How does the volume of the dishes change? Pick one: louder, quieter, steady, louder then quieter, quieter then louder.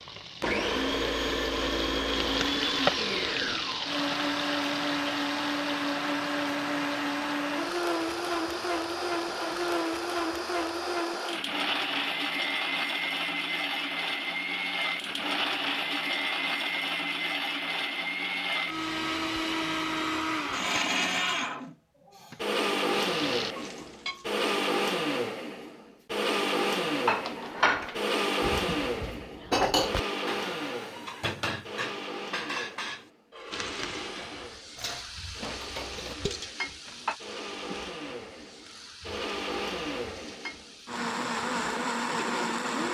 quieter.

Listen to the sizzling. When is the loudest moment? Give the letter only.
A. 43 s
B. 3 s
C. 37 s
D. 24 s
B.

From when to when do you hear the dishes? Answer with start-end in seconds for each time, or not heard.
26.9-37.1.